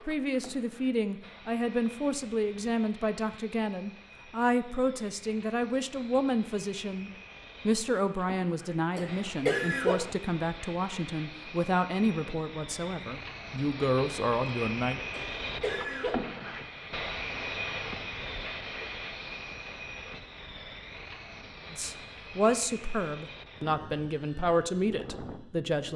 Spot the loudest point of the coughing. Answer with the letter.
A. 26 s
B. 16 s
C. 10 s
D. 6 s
C.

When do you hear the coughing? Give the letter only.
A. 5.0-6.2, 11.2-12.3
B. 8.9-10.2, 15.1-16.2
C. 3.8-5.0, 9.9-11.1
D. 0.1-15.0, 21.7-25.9
B.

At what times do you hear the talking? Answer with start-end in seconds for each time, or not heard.
0.1-15.0, 21.7-25.9.